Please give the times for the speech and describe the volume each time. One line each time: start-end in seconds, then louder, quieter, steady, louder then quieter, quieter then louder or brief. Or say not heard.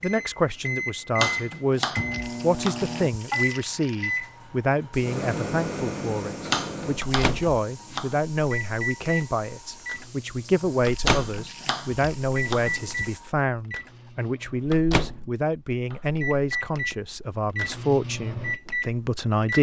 0.0-19.5 steady.